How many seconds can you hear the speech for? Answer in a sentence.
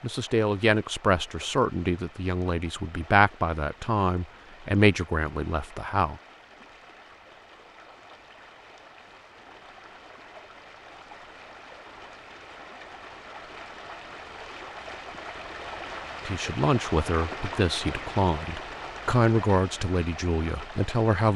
The speech can be heard for 11 seconds in total.